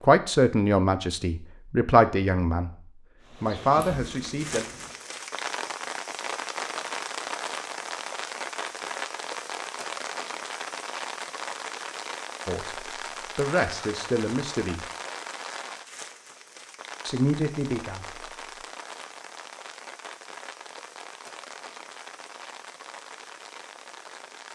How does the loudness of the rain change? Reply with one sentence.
The loudness of the rain goes down.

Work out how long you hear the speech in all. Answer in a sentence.
You can hear the speech for 7 seconds altogether.